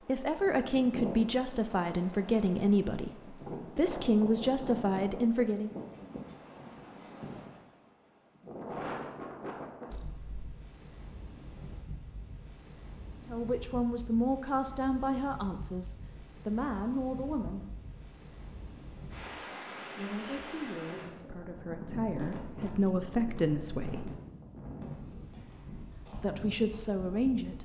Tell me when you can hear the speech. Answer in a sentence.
You can hear the speech from 0.1 to 5.7 s, from 13.2 to 17.8 s, from 19.9 to 24.1 s and from 26.1 to 27.6 s.